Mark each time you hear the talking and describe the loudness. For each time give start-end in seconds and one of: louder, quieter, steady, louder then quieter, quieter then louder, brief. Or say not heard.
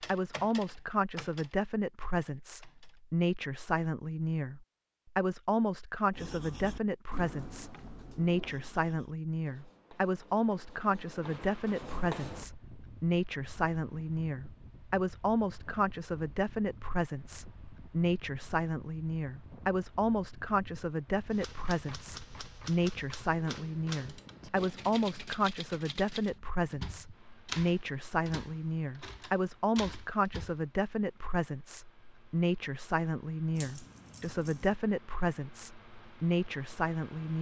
0.1-37.3 steady.